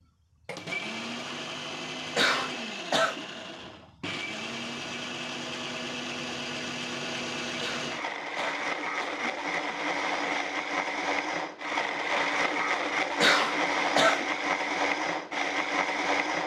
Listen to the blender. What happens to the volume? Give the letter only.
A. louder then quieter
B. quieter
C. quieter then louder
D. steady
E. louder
E.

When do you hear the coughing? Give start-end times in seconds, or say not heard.
2.1-3.2, 7.6-9.2, 13.2-14.3.